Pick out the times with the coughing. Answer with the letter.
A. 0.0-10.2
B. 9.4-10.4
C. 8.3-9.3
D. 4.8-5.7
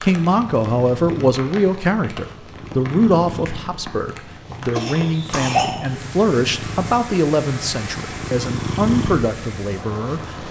D.